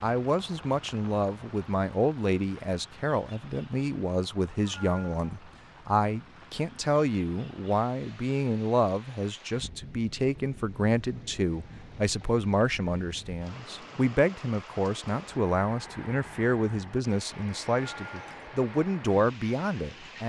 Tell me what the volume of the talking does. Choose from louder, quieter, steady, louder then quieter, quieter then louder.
steady.